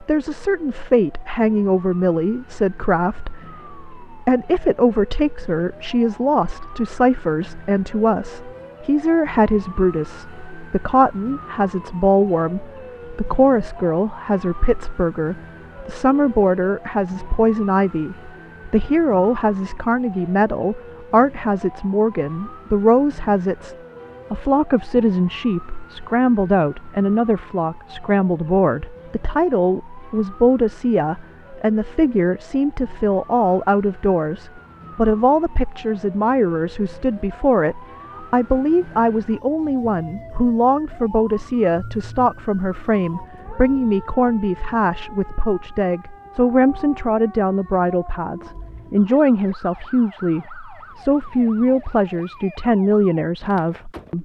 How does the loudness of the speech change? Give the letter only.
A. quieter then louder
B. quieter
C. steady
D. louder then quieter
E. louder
C.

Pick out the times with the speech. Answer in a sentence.
The speech can be heard from 0.0 to 54.1 s.